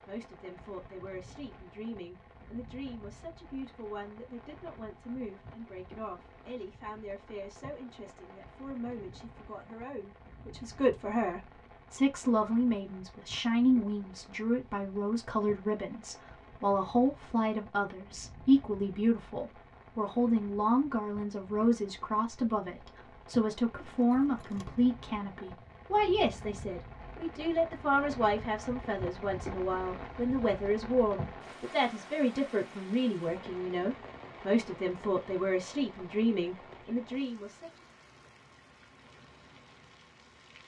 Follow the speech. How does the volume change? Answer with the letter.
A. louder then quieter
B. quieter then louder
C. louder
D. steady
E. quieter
C.